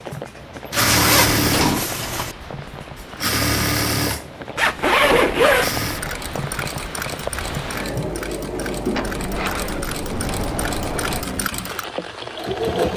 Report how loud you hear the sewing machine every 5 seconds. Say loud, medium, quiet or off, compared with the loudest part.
loud, medium, loud.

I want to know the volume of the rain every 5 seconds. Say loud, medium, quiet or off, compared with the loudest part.
medium, loud, loud.